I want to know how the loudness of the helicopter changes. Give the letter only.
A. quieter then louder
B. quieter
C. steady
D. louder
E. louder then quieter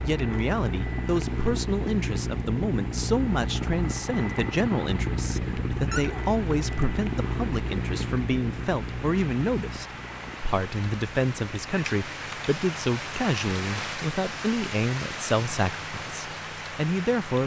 B.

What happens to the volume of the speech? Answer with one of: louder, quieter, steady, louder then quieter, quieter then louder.
steady.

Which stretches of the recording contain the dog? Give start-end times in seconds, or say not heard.
5.7-6.8.